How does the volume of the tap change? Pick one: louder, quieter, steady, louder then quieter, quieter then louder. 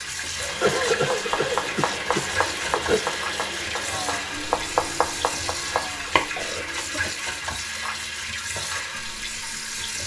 steady.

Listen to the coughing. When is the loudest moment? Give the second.
1 s.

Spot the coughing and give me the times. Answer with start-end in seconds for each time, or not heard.
0.6-3.0, 6.0-7.2.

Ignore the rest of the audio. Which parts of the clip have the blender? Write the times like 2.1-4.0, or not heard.
0.0-10.0.